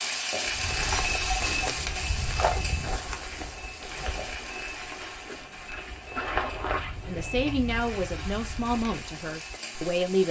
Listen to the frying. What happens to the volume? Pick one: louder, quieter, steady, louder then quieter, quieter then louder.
quieter then louder.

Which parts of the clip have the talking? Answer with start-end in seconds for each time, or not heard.
7.0-10.2.